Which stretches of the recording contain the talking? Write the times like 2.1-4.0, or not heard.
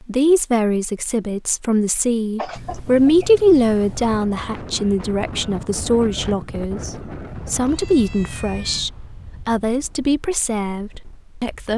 0.1-11.7.